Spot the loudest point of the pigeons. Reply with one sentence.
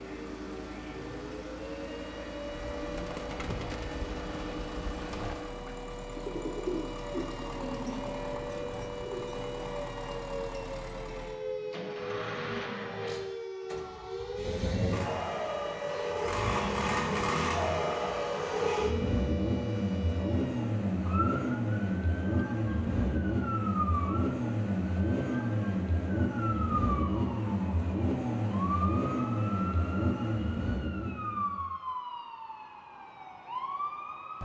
The loudest moment of the pigeons is at 7 seconds.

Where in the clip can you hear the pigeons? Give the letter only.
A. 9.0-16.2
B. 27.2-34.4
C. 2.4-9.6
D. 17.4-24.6
C.